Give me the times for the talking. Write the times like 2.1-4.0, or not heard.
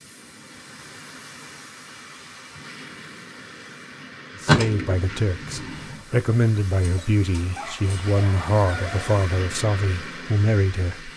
4.4-11.1.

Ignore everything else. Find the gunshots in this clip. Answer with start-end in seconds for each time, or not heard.
4.5-6.0.